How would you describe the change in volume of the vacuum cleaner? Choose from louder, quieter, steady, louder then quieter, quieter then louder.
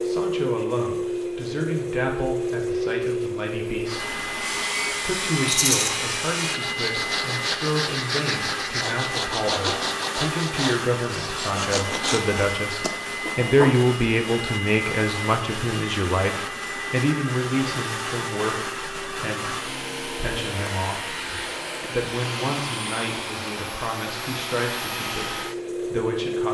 steady.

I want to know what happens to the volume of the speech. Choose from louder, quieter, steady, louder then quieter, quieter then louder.
louder then quieter.